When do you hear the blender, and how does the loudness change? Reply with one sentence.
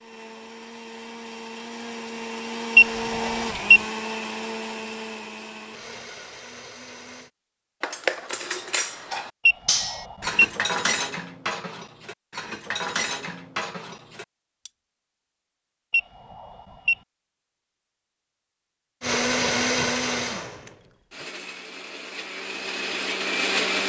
The blender can be heard from 0.0 to 7.3 s, getting louder then quieter; and from 19.0 to 23.8 s, getting quieter then louder.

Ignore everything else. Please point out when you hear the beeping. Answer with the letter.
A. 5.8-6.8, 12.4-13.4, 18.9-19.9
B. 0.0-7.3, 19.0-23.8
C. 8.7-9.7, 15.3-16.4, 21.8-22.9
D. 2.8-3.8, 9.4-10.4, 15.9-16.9
D.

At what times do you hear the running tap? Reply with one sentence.
You can't hear the running tap here.